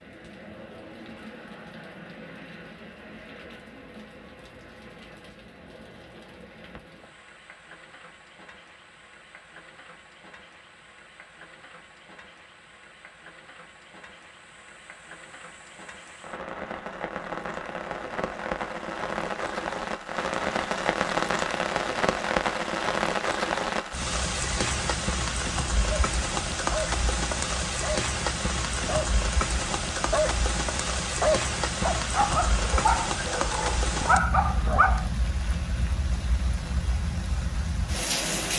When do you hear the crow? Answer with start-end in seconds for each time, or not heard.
not heard.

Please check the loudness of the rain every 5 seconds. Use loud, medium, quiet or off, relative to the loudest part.
quiet, quiet, quiet, medium, loud, loud, loud, medium.